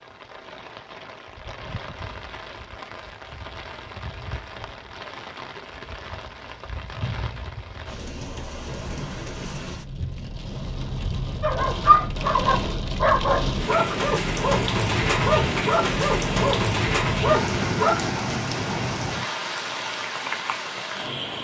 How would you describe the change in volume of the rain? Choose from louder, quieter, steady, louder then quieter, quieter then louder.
louder.